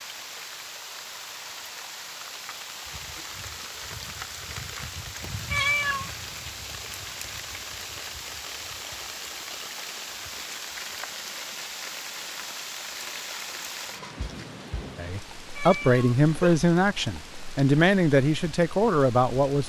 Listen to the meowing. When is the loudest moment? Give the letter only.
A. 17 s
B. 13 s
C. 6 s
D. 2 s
C.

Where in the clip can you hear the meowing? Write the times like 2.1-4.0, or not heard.
5.5-6.1, 15.6-16.6.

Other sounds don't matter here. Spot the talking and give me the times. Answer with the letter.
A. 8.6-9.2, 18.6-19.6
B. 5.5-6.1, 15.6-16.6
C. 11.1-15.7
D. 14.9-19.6
D.